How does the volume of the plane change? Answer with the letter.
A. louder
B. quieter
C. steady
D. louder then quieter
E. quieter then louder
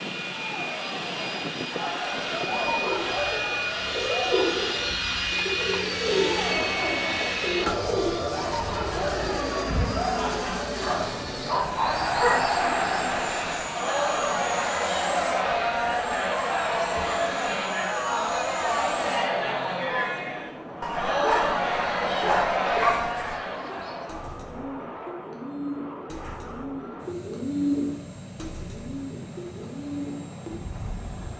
B.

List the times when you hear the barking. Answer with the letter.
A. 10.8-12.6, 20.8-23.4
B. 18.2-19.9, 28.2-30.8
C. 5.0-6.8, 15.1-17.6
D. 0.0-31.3
A.